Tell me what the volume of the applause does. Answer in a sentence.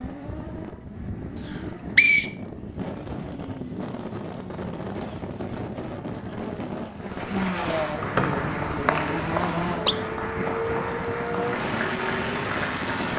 The loudness of the applause stays about the same.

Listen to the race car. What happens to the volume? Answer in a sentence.
The loudness of the race car goes up.